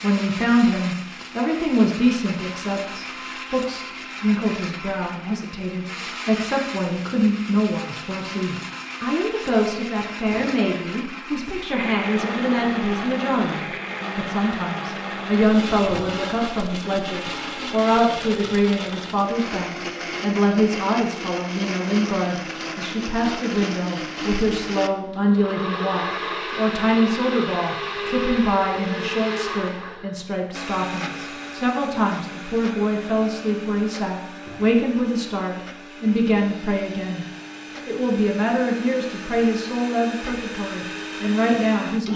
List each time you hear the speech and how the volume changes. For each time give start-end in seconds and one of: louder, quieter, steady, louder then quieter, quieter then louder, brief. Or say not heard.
0.0-37.2 steady
37.9-42.1 quieter then louder.